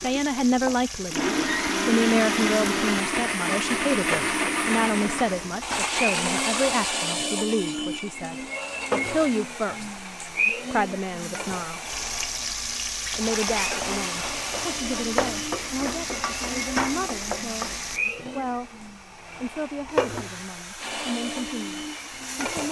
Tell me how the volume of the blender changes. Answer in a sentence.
The loudness of the blender goes down.